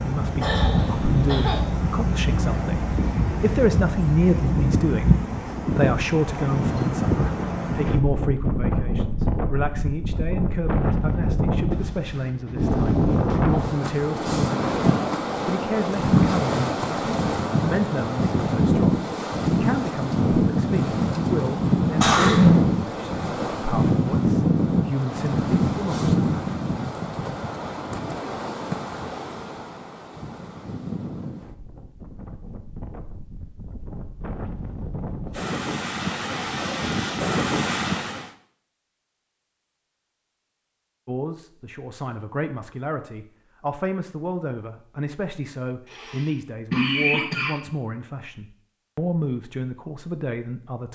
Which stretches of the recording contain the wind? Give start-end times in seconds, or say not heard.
0.0-38.3.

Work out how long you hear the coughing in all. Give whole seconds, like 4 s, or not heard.
4 s.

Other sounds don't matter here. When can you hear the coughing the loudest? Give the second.
22 s.